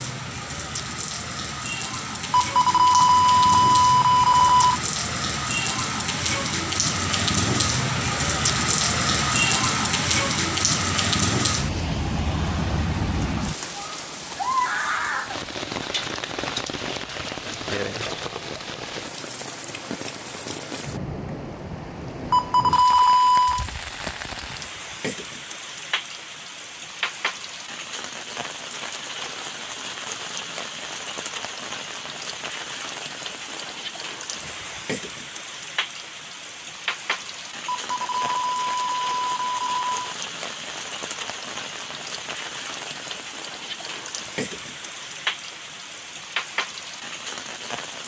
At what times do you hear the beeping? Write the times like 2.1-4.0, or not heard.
2.3-4.8, 22.3-23.6, 37.8-39.9.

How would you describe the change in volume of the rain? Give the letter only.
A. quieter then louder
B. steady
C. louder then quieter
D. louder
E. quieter
E.